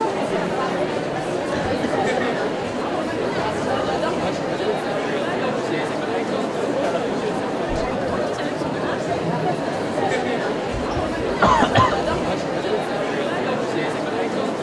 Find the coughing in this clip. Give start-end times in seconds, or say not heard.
1.5-2.4, 10.7-12.1.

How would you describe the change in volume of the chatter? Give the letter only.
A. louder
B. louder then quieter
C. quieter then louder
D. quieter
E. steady
E.